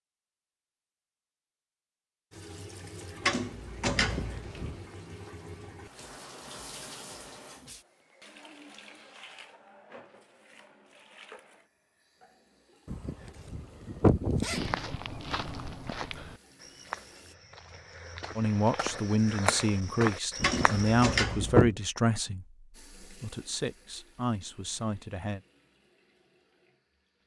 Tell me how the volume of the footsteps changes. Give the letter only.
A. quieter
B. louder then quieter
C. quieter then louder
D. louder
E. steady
C.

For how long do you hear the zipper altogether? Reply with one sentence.
You can hear the zipper for 4 seconds altogether.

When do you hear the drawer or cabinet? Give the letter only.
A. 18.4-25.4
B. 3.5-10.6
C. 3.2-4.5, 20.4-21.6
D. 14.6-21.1
C.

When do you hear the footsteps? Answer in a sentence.
You can hear the footsteps from 14.6 to 21.1 s.